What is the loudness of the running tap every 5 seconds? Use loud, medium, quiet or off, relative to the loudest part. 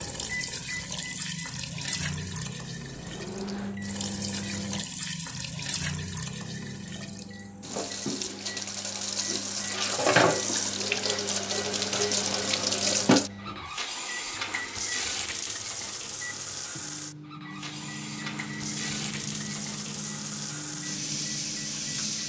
medium, medium, loud, medium, medium.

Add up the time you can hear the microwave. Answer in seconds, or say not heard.
21 s.